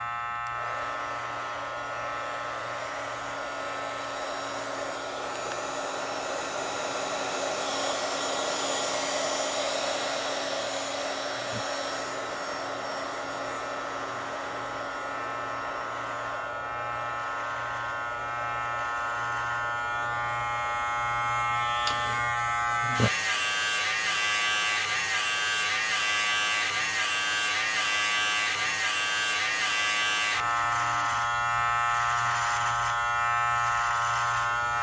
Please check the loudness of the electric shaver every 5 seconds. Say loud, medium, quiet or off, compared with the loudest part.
medium, quiet, quiet, medium, loud, loud, loud.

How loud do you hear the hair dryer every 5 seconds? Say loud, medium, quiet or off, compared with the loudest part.
medium, loud, loud, medium, quiet, quiet, quiet.